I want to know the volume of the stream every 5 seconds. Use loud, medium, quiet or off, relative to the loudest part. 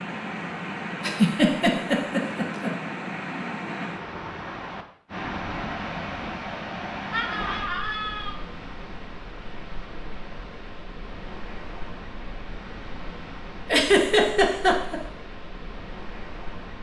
loud, loud, medium, medium.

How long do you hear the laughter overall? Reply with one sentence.
You can hear the laughter for 4 seconds altogether.